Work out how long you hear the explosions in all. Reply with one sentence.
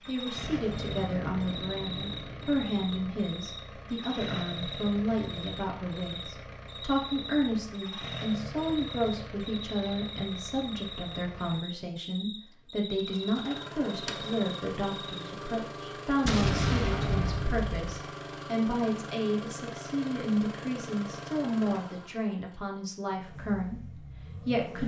You can hear the explosions for 4 seconds altogether.